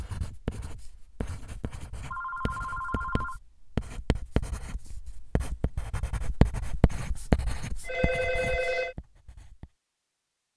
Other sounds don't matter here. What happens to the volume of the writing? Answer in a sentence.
The loudness of the writing goes up, then down.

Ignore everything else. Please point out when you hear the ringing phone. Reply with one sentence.
You can hear the ringing phone from 2.1 to 3.4 s and from 7.8 to 8.9 s.